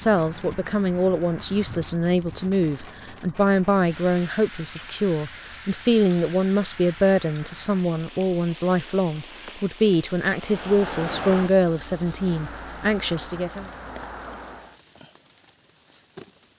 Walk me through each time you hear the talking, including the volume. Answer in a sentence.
You can hear the talking from 0.0 to 13.7 s, at a steady volume.